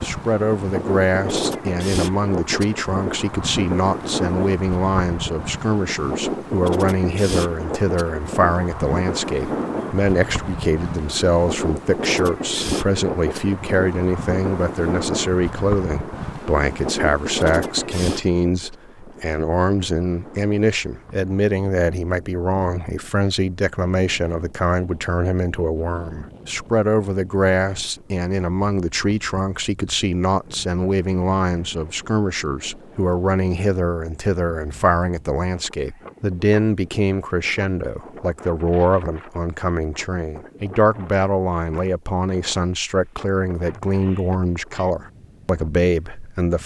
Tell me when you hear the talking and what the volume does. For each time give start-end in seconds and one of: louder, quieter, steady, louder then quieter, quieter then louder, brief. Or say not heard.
0.0-46.6 steady.